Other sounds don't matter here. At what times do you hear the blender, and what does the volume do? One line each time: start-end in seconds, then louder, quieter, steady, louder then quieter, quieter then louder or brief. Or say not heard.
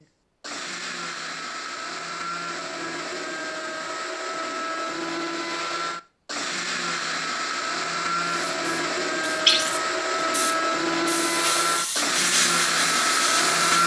0.0-13.8 louder.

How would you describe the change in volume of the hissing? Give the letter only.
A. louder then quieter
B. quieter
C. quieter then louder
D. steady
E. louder
E.